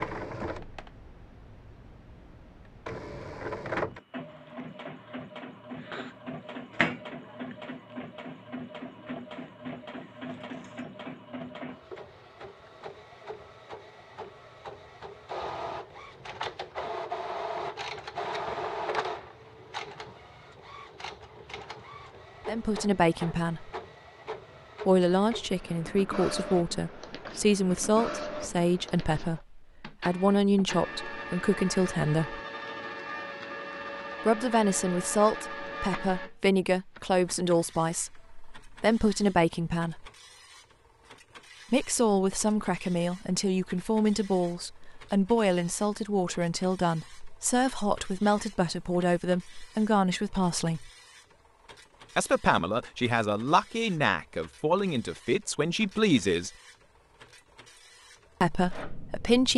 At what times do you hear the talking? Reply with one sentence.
The talking can be heard from 22.4 to 23.7 s, from 24.9 to 32.4 s, from 34.2 to 40.1 s, from 41.7 to 50.9 s, from 52.1 to 56.5 s and from 58.4 to 59.5 s.